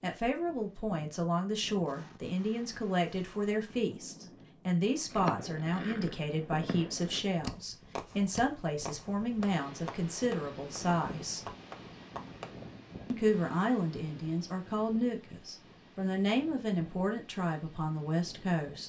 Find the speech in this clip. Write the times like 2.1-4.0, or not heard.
0.0-11.4, 13.1-18.8.